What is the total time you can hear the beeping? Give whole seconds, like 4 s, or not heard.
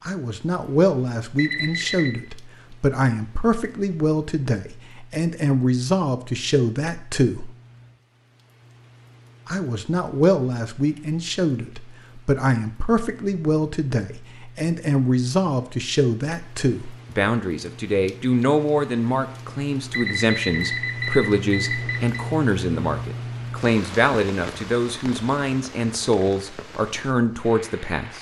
3 s.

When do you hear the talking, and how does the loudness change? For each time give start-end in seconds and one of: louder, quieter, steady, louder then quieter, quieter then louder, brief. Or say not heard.
0.0-7.5 steady
9.4-28.1 steady.